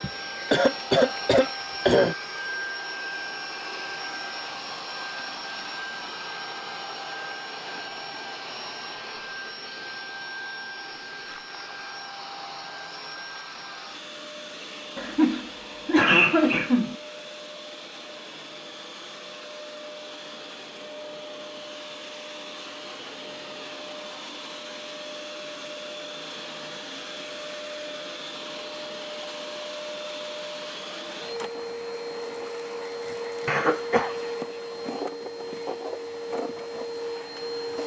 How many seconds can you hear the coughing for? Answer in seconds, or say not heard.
5 s.